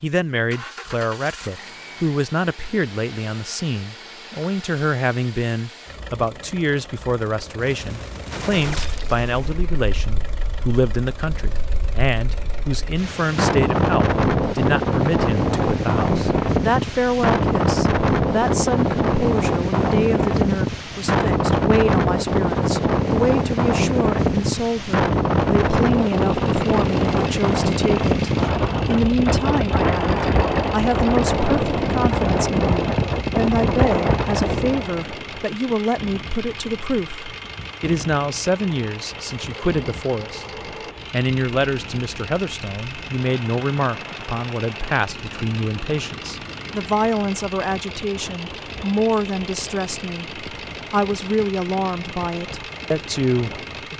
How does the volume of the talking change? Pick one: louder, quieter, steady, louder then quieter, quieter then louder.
steady.